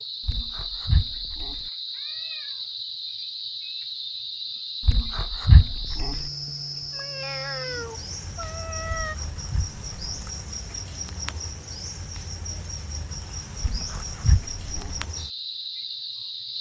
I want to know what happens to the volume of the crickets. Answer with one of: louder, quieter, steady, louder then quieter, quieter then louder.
steady.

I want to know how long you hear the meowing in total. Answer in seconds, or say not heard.
4 s.